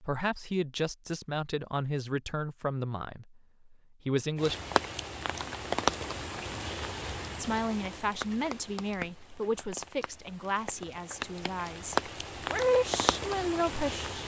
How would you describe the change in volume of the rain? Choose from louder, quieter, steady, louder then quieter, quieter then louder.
quieter then louder.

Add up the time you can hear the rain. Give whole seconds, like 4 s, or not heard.
10 s.